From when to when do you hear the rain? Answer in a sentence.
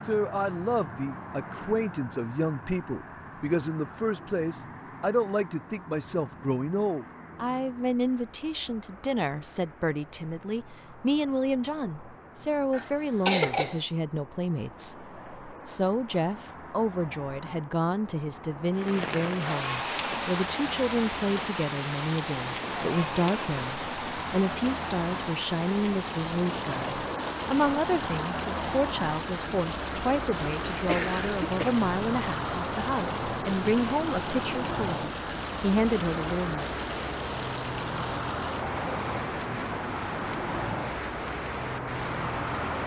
The rain can be heard from 18.7 to 42.8 s.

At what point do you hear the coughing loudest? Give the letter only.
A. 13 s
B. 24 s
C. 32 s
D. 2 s
A.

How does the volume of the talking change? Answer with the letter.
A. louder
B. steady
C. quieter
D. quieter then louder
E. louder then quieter
B.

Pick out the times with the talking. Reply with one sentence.
The talking can be heard from 0.1 to 36.8 s.